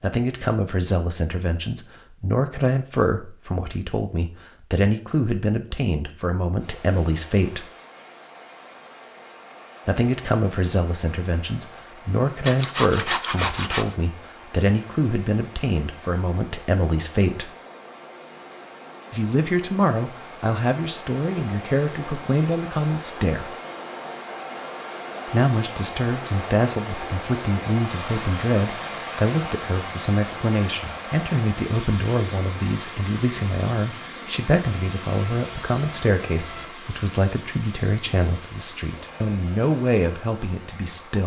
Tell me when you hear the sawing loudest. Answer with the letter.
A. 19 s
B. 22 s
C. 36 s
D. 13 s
D.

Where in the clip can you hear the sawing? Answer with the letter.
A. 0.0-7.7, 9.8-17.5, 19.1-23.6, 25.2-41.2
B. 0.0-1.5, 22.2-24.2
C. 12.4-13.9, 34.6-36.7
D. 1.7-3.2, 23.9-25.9
C.